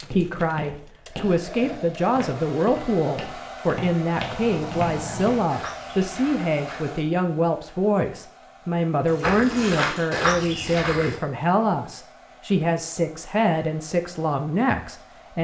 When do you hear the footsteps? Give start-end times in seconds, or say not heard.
0.0-6.8, 9.2-11.2.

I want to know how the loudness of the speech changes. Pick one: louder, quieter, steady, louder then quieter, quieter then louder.
steady.